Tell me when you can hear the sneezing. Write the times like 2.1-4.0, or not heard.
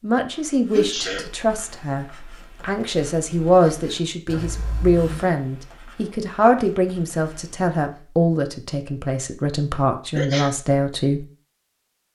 0.3-1.3, 4.3-5.3, 10.2-10.6.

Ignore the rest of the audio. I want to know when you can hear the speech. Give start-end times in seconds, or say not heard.
0.0-11.2.